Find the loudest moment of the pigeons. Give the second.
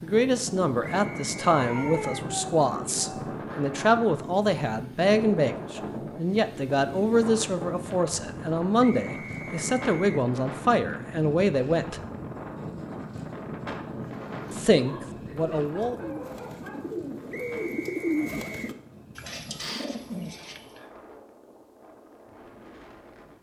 18 s.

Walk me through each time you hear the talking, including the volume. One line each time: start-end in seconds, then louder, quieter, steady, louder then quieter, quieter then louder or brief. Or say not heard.
0.0-12.0 steady
14.5-16.1 brief.